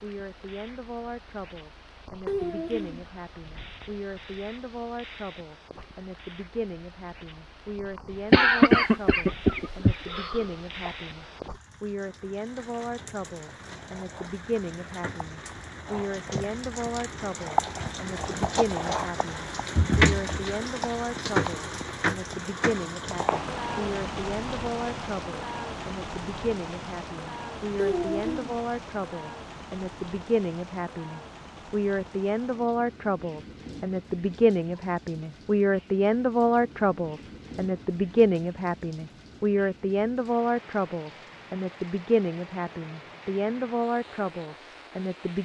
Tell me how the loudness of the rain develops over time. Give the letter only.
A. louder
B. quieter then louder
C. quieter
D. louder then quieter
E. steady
D.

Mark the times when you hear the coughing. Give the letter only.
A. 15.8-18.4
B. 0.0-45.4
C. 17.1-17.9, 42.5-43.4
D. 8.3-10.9
D.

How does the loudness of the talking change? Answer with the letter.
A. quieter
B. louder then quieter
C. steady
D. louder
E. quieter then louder
D.